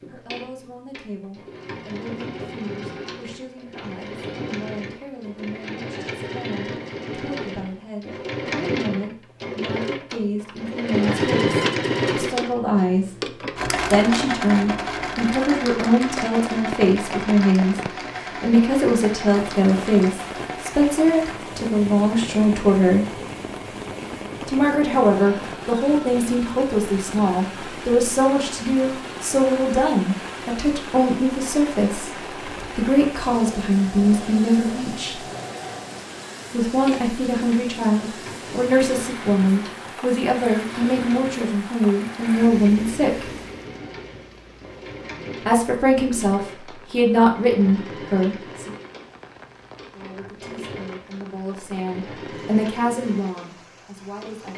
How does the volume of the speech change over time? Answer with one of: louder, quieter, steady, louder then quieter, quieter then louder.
louder.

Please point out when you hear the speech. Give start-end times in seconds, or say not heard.
0.1-17.8, 18.4-23.2, 24.4-35.2, 36.5-43.3, 45.4-48.7, 50.0-54.5.